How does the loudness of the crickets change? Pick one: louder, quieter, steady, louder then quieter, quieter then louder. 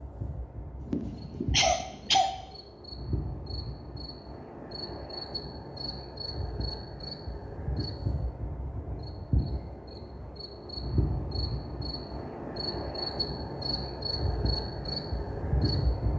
louder.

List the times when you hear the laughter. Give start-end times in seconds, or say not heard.
0.8-2.3.